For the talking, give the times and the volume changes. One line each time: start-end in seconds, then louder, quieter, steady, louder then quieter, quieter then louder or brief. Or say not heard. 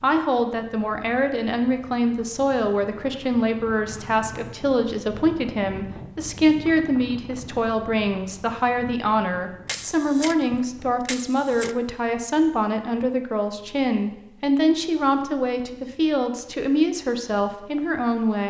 0.0-18.4 steady.